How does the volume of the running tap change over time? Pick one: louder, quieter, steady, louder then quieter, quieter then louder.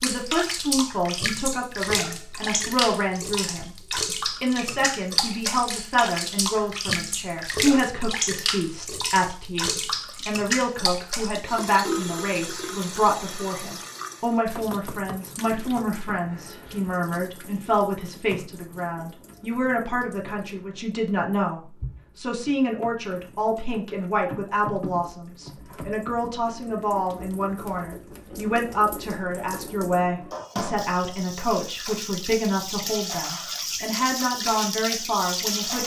quieter then louder.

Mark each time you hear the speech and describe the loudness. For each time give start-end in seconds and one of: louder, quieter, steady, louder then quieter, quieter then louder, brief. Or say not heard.
0.0-35.8 steady.